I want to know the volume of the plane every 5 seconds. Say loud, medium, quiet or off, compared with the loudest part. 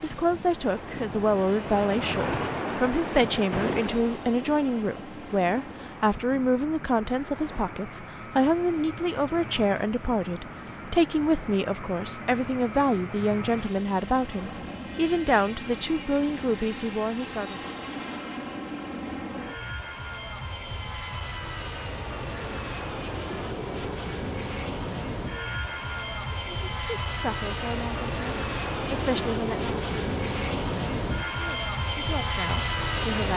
quiet, quiet, medium, medium, medium, loud, loud.